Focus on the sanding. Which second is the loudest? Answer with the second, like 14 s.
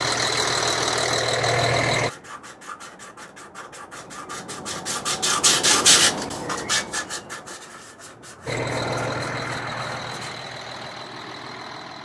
6 s.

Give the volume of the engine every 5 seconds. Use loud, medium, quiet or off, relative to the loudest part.
loud, medium, quiet.